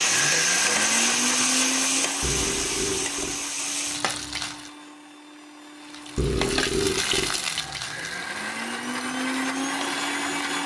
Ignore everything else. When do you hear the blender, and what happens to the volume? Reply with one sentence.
The blender can be heard from 0.0 to 10.6 s, getting quieter then louder.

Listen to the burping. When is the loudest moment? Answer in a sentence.
The volume of the burping peaks at 7 seconds.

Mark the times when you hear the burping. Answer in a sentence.
You can hear the burping from 2.2 to 3.5 s and from 6.2 to 7.4 s.